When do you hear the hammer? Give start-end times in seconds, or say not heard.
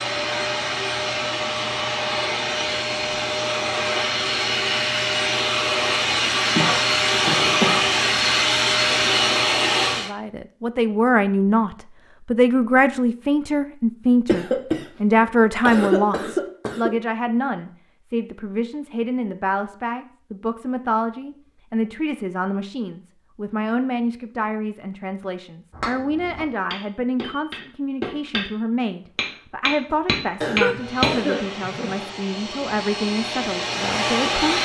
25.7-28.4, 29.1-31.1.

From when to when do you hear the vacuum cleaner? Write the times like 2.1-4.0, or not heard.
0.0-10.1, 30.8-34.5.